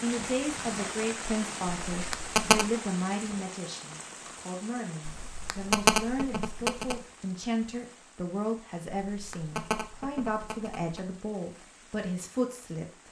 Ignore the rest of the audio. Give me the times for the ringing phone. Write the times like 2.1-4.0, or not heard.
1.9-2.6, 5.0-7.0, 9.1-11.1.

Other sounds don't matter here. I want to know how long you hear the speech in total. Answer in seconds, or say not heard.
13 s.